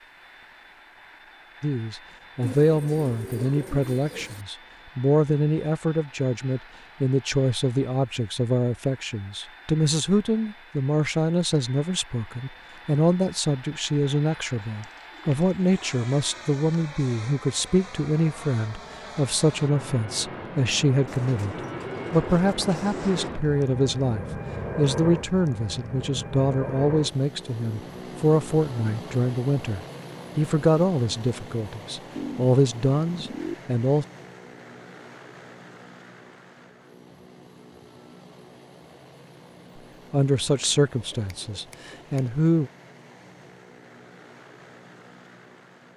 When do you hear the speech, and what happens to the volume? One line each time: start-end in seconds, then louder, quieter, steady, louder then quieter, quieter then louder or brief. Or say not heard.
1.6-34.0 steady
40.1-42.7 brief.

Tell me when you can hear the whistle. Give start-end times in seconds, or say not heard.
not heard.